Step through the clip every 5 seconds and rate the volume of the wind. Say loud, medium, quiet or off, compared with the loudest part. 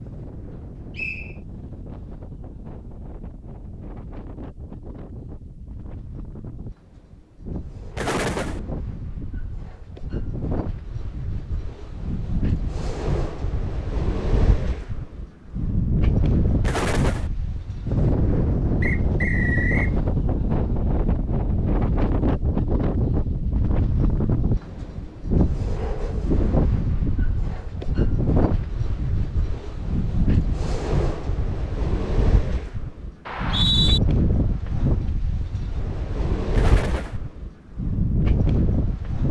quiet, quiet, medium, loud, loud, loud, loud, loud.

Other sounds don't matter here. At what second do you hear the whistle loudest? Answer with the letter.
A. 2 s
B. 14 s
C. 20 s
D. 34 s
D.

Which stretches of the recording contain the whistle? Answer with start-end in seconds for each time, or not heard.
0.9-1.4, 18.8-19.9, 33.2-34.0.